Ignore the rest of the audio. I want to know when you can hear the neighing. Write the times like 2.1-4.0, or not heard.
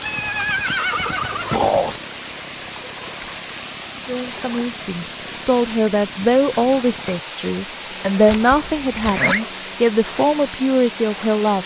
0.0-2.0, 8.2-9.4.